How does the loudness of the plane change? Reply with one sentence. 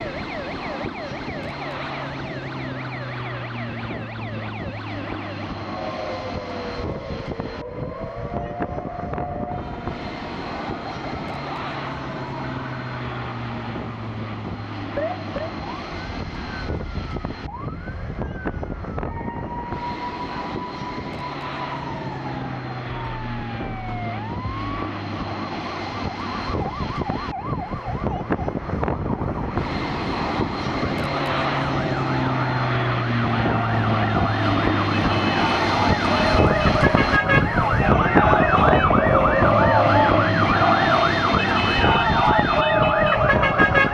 The loudness of the plane goes up.